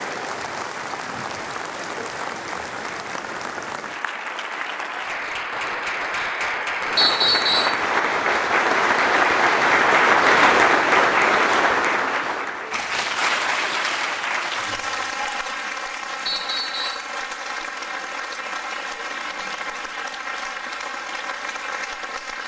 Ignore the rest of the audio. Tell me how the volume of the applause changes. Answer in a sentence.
The volume of the applause goes up, then down.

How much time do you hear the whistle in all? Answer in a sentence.
The whistle can be heard for 2 seconds in total.